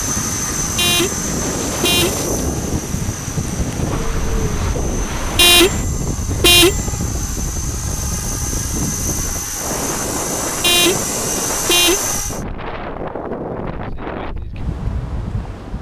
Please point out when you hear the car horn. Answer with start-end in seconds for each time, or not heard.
0.8-2.2, 5.3-7.0, 10.6-12.2.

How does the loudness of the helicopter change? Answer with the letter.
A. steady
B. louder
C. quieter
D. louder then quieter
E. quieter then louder
E.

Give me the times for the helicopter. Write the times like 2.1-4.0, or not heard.
0.0-12.4.